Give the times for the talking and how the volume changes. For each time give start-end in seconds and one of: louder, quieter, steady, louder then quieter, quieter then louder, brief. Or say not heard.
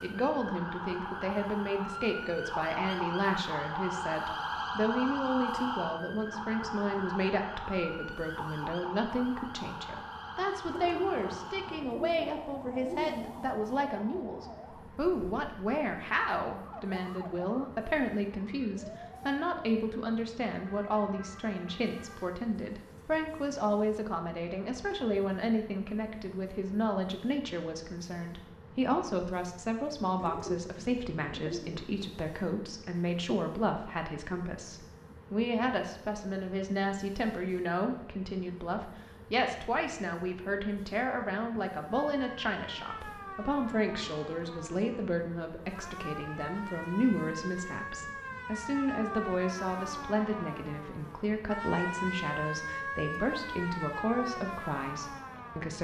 0.0-55.8 steady.